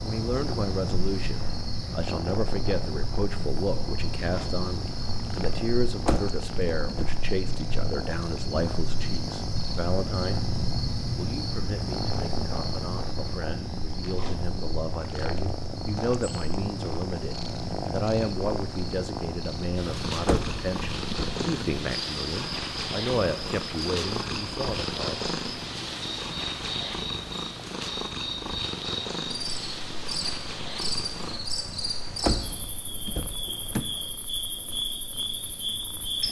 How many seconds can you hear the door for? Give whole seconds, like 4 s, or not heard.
4 s.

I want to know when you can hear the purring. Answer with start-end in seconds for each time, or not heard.
0.0-36.2.